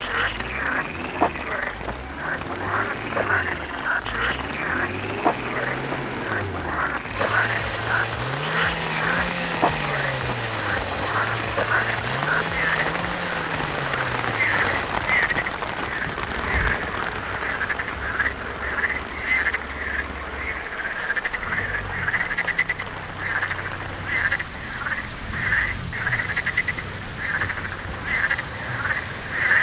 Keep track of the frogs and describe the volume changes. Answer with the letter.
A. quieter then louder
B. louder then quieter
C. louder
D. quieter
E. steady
E.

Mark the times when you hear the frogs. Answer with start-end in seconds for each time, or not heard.
0.0-29.5.